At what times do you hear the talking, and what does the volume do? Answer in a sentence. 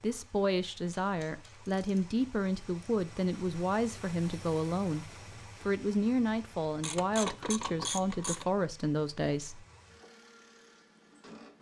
You can hear the talking from 0.0 to 9.7 s, at a steady volume.